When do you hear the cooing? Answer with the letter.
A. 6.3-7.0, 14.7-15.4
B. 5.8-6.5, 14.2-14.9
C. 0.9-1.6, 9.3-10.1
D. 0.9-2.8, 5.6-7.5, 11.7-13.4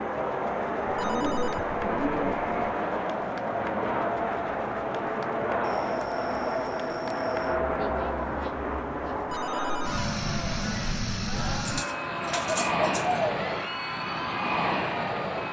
D.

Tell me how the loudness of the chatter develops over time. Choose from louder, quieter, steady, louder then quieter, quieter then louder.
steady.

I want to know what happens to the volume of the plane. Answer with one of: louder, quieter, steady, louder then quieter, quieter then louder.
steady.